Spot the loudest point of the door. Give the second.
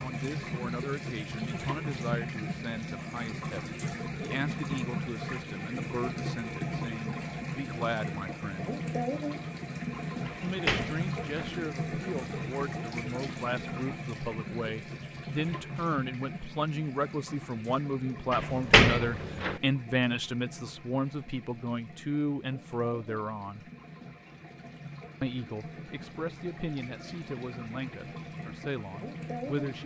19 s.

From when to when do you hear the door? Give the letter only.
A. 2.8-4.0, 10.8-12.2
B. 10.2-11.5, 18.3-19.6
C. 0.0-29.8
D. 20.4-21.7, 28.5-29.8
B.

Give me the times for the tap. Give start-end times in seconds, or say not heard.
0.0-29.8.